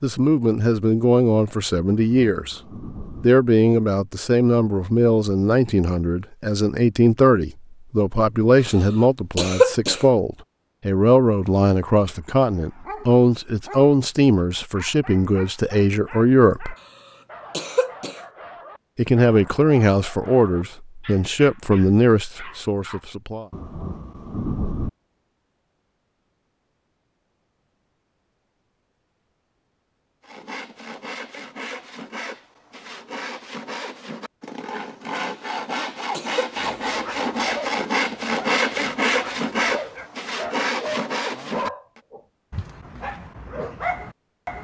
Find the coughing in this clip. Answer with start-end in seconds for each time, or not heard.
9.3-10.0, 17.5-18.2, 36.1-36.8.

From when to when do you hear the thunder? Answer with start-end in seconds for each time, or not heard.
1.9-3.3, 23.5-24.9.